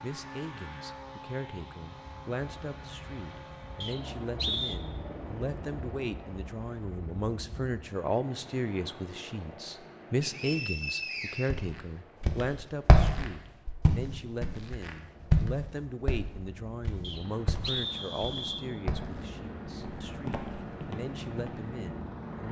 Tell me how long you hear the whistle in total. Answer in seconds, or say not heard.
4 s.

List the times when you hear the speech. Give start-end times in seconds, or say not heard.
0.0-22.4.